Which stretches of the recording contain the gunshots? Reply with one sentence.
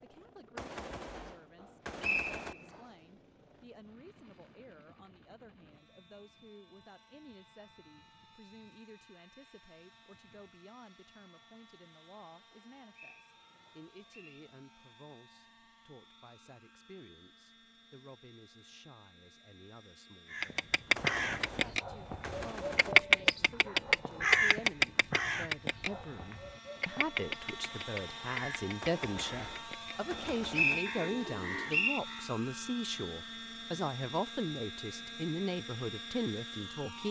You can hear the gunshots from 0.6 to 2.5 s, from 20.9 to 22.9 s and from 28.8 to 30.8 s.